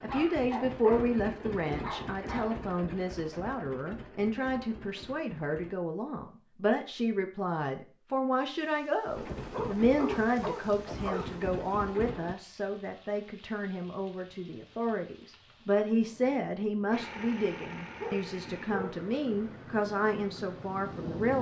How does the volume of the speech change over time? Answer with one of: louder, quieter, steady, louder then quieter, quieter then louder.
steady.